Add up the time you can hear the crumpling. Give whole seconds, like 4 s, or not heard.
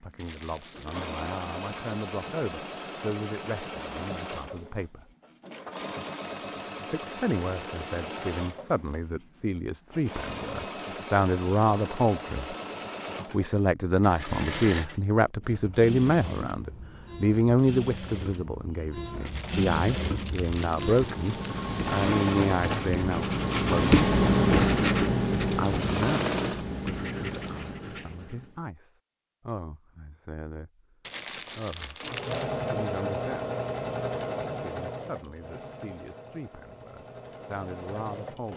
5 s.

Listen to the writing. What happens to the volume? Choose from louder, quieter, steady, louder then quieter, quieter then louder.
louder then quieter.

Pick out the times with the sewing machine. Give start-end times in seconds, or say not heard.
0.1-27.8, 32.0-38.5.